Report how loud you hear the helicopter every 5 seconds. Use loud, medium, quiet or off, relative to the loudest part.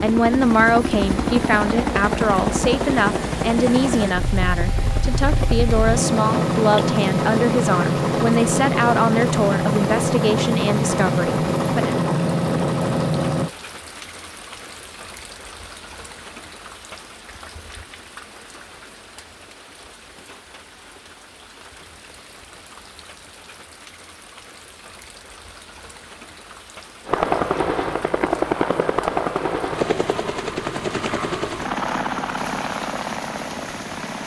loud, loud, loud, off, off, loud, medium.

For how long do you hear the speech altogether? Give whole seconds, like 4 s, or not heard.
12 s.